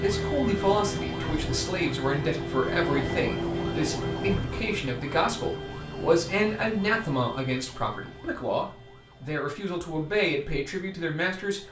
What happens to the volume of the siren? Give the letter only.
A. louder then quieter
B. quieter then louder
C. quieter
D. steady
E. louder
C.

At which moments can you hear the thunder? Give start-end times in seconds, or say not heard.
3.0-4.3.